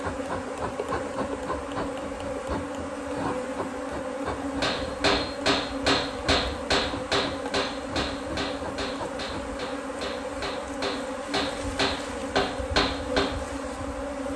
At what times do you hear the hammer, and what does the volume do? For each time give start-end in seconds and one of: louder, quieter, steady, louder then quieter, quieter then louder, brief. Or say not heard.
4.6-13.6 quieter then louder.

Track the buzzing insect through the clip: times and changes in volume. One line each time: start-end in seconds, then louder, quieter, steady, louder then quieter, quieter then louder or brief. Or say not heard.
0.0-14.3 steady.